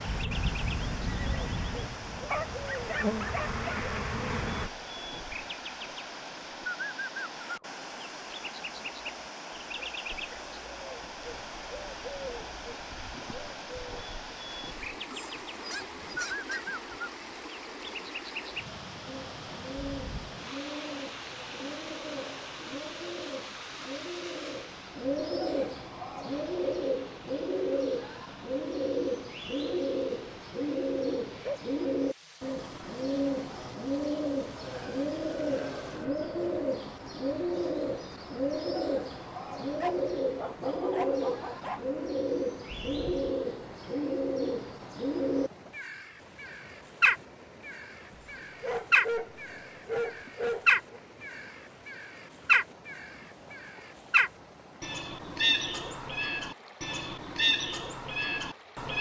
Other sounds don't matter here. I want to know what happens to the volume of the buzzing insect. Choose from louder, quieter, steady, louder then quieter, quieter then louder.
louder.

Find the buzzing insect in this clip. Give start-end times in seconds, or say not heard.
0.0-4.7.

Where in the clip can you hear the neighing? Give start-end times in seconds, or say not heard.
0.1-2.0, 19.8-20.2, 42.7-43.4.